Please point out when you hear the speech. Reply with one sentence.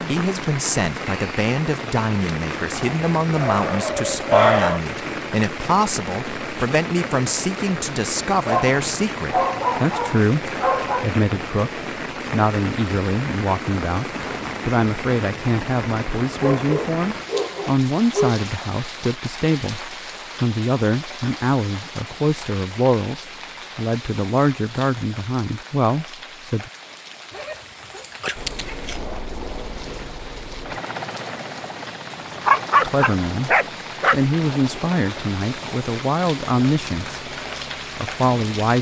The speech can be heard from 0.1 to 26.7 s, from 32.9 to 37.2 s and from 38.0 to 38.7 s.